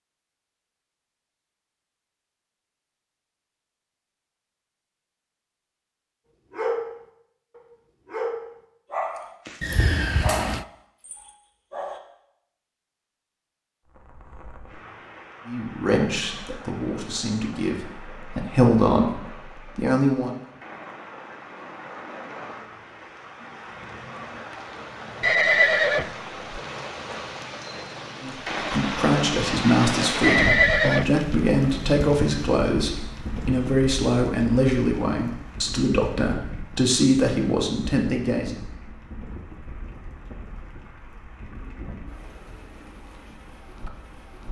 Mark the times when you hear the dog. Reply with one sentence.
You can hear the dog from 6.5 to 12.0 s.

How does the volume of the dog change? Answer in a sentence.
The loudness of the dog goes up, then down.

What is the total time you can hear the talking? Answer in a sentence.
The talking can be heard for 15 seconds in total.